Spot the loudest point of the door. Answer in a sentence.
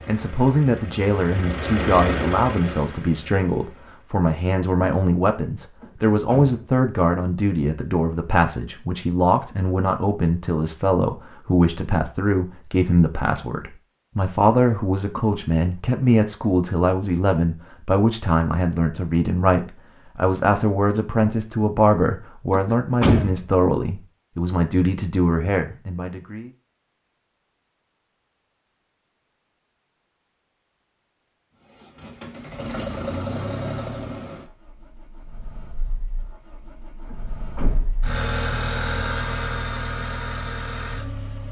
The volume of the door peaks at 23 seconds.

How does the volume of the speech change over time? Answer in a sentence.
The loudness of the speech stays about the same.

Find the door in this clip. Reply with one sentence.
You can hear the door from 5.8 to 6.7 s, from 22.5 to 23.4 s and from 37.0 to 38.0 s.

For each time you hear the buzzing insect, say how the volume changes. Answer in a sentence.
The buzzing insect can't be heard in this clip.